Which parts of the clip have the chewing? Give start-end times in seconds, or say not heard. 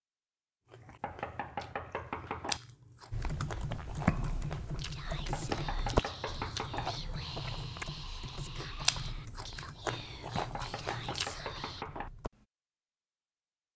0.7-11.5.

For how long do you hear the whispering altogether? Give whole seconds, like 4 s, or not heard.
7 s.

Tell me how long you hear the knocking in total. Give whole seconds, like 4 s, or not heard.
5 s.